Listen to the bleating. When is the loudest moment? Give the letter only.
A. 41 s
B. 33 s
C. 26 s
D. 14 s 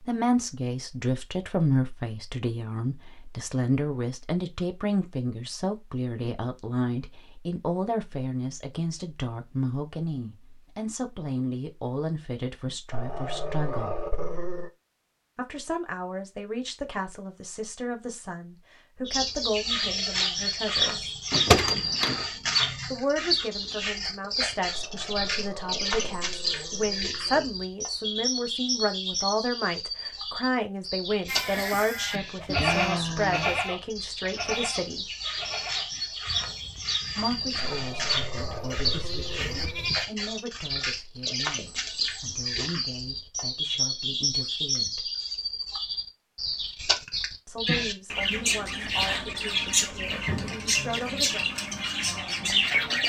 B.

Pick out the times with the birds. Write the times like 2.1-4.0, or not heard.
19.1-53.0.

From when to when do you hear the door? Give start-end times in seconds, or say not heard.
21.3-22.2.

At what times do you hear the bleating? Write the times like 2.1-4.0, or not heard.
31.2-40.0.